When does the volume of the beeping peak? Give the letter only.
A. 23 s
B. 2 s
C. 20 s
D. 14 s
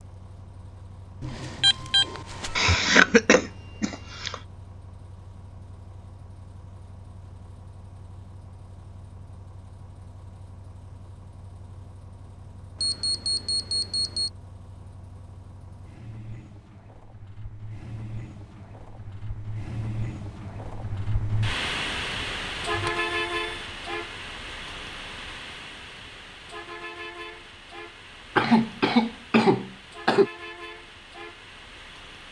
B.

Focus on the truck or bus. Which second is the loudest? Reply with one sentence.
The volume of the truck or bus peaks at 23 seconds.